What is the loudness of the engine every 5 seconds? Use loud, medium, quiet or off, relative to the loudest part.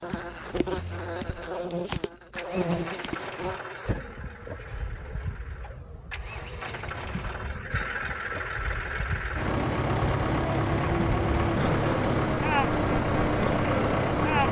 quiet, medium, loud.